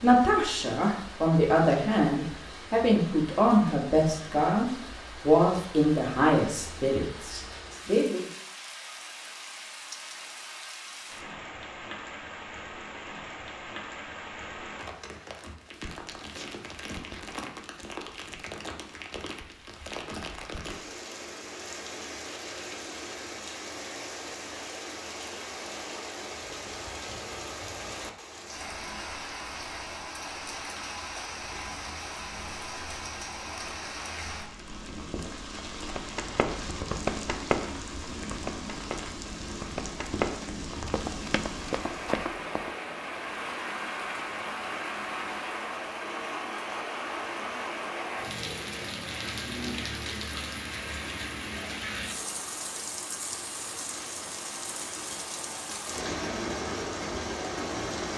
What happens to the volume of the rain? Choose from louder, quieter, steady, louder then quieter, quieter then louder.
louder.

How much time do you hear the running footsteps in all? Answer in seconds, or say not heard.
7 s.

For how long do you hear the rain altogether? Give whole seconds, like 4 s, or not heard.
58 s.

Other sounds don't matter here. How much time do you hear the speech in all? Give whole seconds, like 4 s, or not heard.
8 s.